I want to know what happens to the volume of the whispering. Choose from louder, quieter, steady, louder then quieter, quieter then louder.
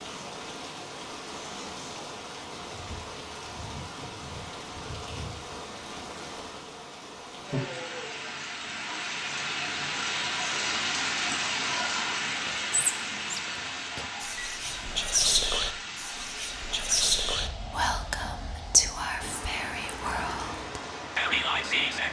louder.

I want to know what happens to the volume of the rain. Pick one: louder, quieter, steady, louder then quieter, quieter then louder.
louder then quieter.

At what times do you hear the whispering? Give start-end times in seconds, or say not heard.
12.4-22.0.